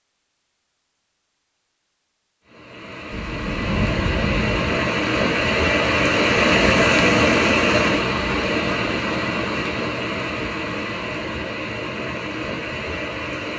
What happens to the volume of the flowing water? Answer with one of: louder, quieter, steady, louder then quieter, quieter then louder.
louder then quieter.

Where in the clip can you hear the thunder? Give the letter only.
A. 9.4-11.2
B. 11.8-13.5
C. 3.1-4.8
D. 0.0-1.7
C.